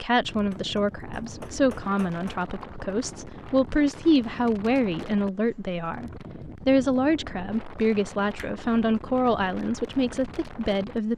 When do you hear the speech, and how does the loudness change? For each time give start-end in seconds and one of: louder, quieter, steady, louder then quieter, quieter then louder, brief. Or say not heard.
0.0-11.1 steady.